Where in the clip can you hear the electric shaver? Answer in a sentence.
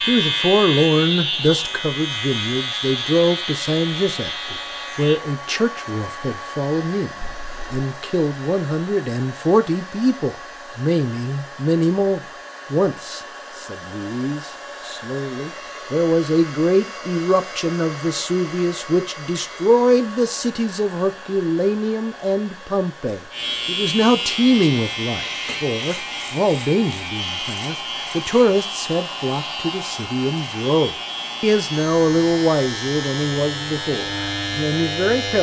The electric shaver can be heard from 0.0 to 5.2 s and from 23.3 to 35.3 s.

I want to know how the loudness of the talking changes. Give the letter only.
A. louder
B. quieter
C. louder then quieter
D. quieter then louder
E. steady
E.